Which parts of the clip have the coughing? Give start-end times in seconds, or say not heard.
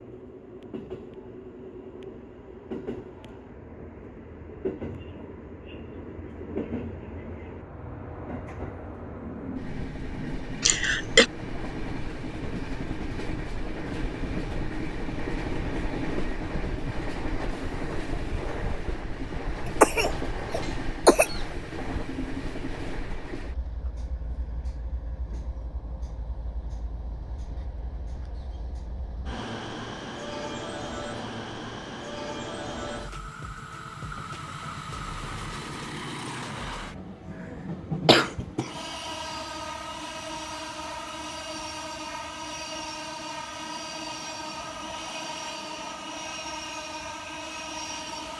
10.6-11.2, 19.8-21.4, 38.0-38.7.